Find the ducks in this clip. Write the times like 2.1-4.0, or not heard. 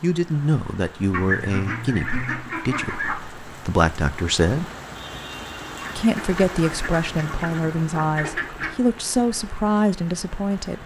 1.1-3.1, 5.8-8.8.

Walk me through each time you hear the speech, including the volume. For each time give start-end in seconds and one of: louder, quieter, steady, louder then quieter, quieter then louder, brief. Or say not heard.
0.0-4.7 quieter then louder
6.0-10.8 steady.